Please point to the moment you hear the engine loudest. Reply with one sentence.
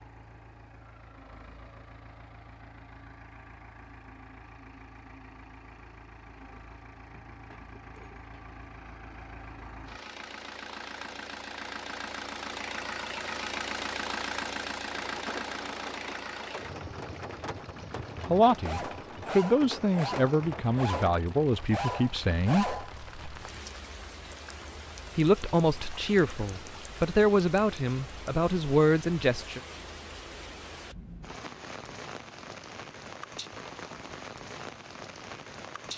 The loudest moment of the engine is at 14 seconds.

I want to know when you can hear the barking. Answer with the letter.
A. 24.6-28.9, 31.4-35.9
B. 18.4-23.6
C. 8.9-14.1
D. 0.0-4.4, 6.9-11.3
B.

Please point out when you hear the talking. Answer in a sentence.
The talking can be heard from 18.2 to 22.6 s and from 25.1 to 29.6 s.